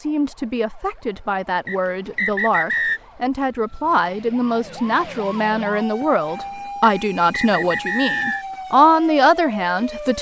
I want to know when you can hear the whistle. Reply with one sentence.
You can hear the whistle from 1.6 to 3.0 s and from 6.8 to 8.4 s.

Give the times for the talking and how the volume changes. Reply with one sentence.
The talking can be heard from 0.0 to 10.1 s, getting louder.